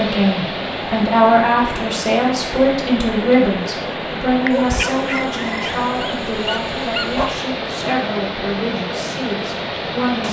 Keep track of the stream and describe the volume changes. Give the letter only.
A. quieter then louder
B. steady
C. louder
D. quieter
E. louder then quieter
B.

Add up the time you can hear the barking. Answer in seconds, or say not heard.
3 s.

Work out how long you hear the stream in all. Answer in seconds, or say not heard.
10 s.